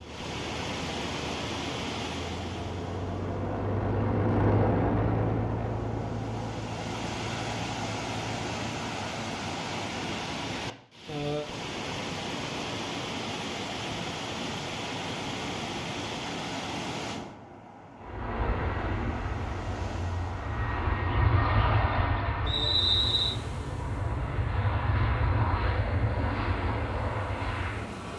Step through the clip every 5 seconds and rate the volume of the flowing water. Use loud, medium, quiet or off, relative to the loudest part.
loud, loud, loud, loud, medium, medium.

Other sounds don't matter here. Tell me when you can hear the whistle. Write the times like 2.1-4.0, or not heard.
22.4-23.4.